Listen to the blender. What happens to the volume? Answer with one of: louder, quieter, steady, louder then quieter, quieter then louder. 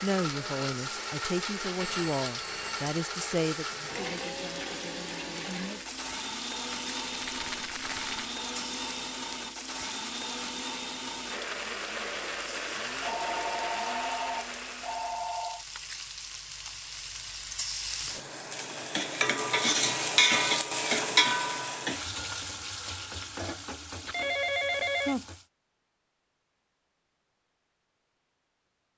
steady.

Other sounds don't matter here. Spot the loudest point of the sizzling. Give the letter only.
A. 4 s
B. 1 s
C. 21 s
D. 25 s
C.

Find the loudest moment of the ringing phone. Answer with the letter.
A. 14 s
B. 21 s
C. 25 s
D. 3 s
C.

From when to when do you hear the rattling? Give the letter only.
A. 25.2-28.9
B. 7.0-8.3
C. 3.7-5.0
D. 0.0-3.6
B.